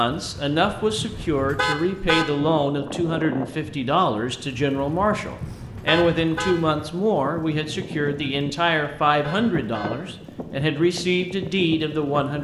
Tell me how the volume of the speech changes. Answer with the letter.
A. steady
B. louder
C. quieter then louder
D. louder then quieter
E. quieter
A.